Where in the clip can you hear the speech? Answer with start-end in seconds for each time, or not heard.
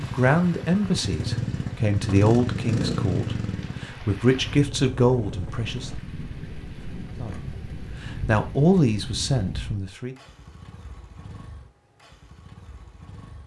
0.0-5.9, 7.2-10.2.